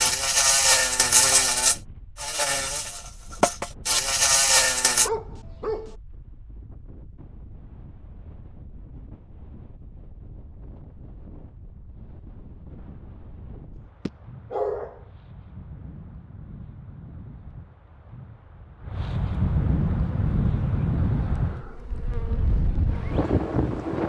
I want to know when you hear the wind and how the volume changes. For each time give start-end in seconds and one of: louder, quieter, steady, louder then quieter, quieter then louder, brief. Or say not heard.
0.0-24.0 louder.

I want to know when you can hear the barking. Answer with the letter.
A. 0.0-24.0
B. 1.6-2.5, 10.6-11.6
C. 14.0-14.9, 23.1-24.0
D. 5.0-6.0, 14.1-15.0
D.